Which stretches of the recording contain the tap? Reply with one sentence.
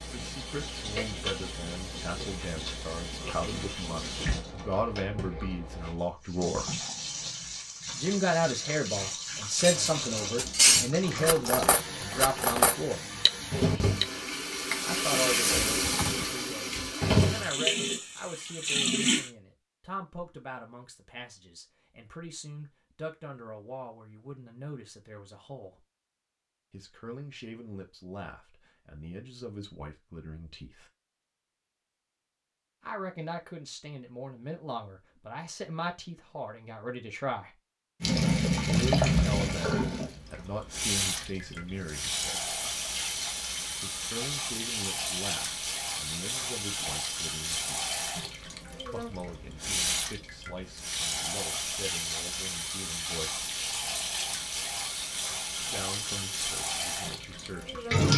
The tap can be heard from 0.0 to 19.3 s and from 38.0 to 58.1 s.